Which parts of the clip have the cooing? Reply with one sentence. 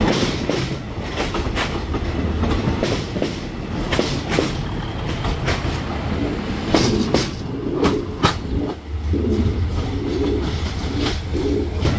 You can hear the cooing from 6.0 to 11.9 s.